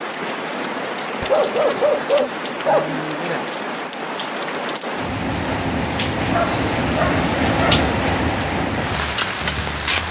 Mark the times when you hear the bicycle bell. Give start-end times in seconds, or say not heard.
not heard.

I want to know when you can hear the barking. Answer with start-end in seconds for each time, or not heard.
1.2-3.0, 6.2-7.8.